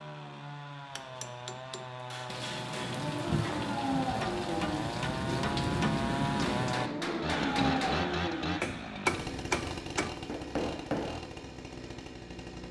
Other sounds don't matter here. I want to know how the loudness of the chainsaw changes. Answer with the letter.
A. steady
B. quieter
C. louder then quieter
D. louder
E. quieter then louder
C.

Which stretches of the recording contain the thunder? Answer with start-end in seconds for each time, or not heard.
2.2-6.8.